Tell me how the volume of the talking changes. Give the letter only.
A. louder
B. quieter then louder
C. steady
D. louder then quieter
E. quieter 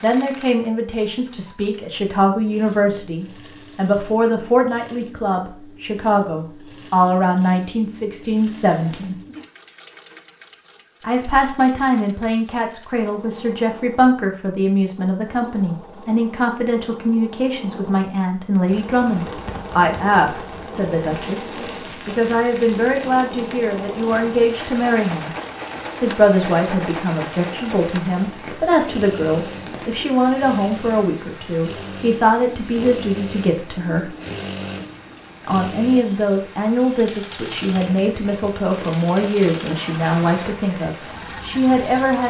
C.